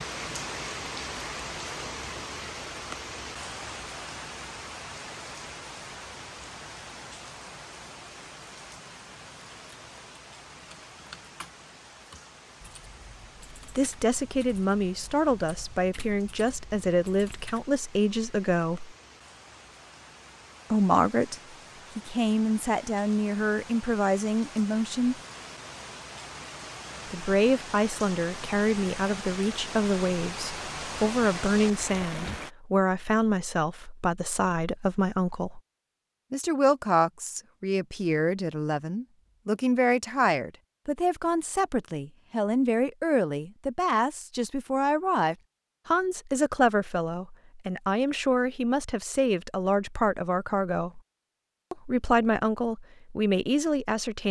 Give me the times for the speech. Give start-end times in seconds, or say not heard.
13.7-18.9, 20.7-25.1, 27.1-35.6, 36.3-51.0, 51.7-54.2.